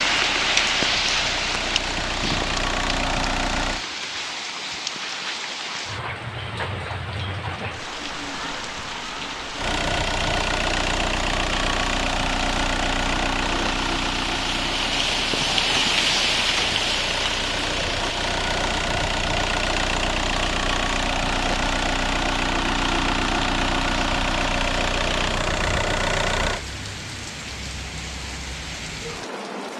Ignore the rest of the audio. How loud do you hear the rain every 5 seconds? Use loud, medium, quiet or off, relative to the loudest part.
loud, medium, medium, loud, medium, medium.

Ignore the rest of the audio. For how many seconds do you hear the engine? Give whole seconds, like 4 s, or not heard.
21 s.